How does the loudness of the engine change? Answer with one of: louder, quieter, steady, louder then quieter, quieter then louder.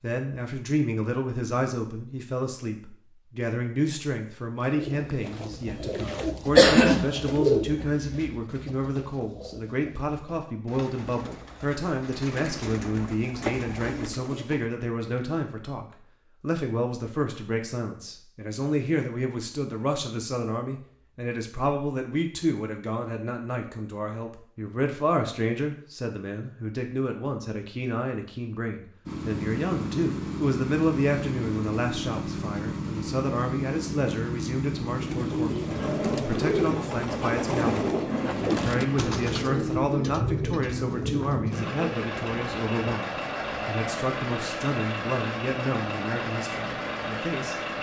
steady.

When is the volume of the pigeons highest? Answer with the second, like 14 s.
7 s.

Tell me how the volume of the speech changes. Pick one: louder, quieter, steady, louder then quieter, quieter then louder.
steady.